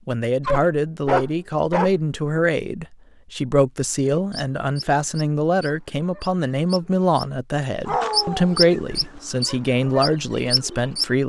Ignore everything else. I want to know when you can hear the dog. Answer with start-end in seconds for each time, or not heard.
0.5-2.4, 7.8-9.2.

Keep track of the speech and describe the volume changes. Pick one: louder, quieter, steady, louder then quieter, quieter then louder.
steady.